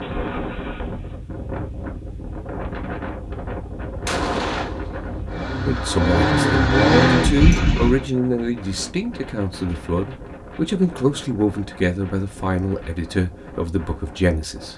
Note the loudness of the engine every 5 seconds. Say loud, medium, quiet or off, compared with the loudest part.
quiet, loud, off.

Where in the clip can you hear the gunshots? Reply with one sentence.
The gunshots can be heard from 4.0 to 5.2 s.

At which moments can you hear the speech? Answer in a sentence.
The speech can be heard from 5.7 to 14.7 s.